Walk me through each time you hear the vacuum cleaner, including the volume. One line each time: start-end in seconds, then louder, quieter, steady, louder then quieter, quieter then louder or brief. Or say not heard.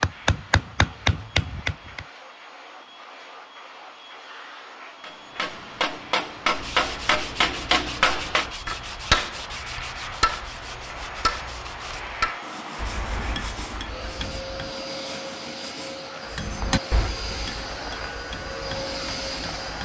0.0-19.8 louder.